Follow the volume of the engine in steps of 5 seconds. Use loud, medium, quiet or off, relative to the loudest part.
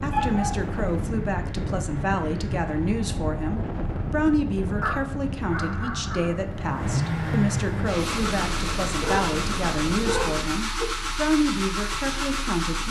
medium, loud, loud.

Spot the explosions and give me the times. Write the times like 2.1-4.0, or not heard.
6.8-10.7.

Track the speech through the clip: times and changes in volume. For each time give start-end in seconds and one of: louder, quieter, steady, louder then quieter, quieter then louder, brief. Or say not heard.
0.0-12.8 steady.